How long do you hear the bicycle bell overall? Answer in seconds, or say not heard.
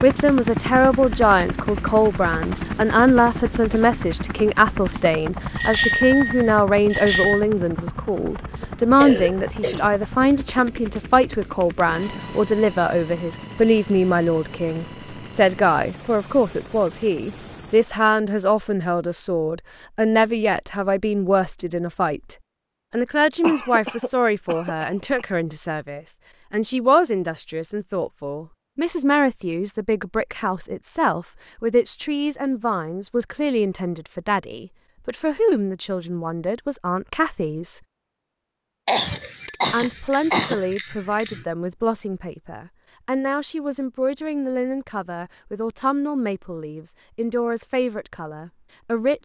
4 s.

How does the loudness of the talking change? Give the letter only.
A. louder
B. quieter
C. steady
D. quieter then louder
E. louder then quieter
B.